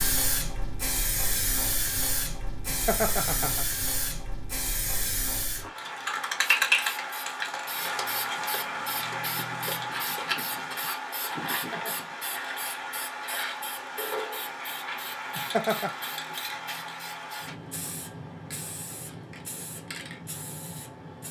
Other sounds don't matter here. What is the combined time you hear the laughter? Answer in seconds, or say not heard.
2 s.